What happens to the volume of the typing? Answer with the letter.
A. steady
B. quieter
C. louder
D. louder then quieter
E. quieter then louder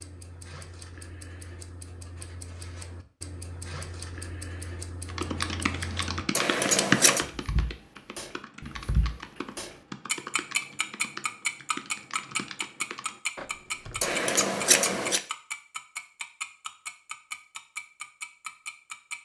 B.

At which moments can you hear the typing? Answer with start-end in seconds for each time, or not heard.
5.0-14.2.